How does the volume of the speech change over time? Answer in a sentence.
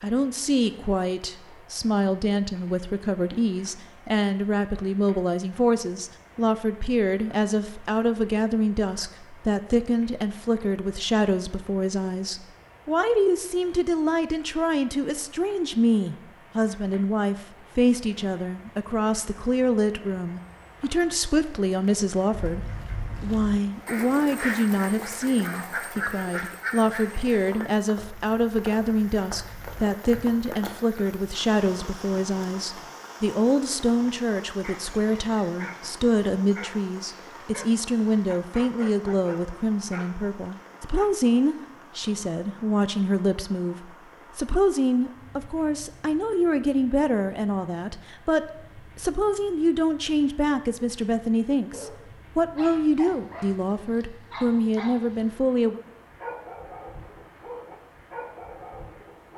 The loudness of the speech stays about the same.